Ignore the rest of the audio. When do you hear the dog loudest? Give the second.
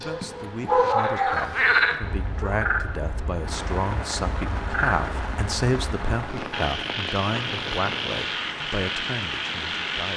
1 s.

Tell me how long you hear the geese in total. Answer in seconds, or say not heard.
not heard.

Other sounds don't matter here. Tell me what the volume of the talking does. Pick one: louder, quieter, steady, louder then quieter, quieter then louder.
louder then quieter.